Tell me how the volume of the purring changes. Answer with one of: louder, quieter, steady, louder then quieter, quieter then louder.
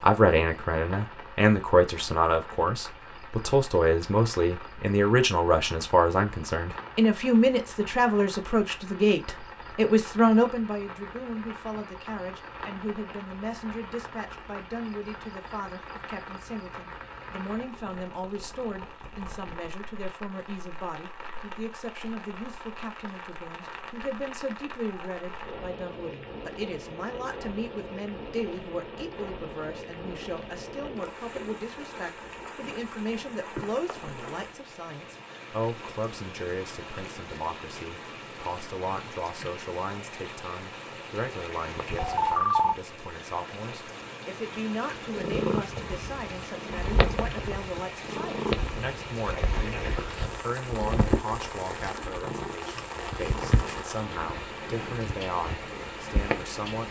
quieter.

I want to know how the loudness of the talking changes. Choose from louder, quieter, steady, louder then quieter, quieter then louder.
quieter.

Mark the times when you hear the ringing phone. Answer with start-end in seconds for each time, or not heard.
41.8-42.8.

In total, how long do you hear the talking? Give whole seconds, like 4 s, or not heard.
57 s.